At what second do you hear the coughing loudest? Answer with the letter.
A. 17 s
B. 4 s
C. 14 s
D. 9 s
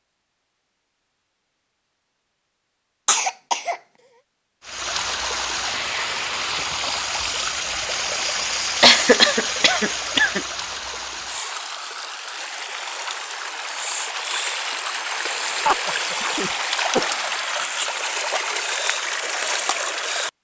D.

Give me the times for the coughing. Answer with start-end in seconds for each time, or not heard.
3.0-3.8, 8.8-10.4, 15.7-17.3.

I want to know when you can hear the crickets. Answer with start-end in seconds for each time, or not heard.
not heard.